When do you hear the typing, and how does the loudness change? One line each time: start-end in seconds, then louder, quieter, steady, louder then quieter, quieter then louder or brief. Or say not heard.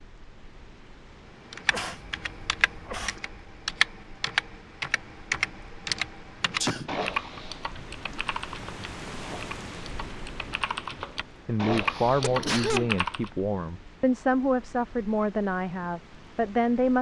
1.5-13.3 quieter then louder.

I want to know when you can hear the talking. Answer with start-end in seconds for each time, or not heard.
11.4-16.9.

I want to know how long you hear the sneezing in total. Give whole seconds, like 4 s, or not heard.
3 s.